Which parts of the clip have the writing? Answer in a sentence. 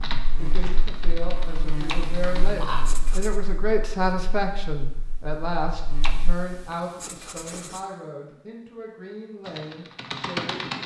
The writing can be heard from 1.9 to 3.4 s and from 6.0 to 7.8 s.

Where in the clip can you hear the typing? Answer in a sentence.
The typing can be heard from 0.0 to 3.0 s and from 9.4 to 10.8 s.